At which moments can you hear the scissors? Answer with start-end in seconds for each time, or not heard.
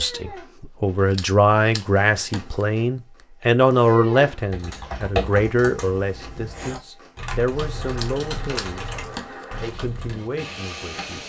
1.1-2.6, 8.0-9.4.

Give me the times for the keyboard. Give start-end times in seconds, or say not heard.
4.3-10.2.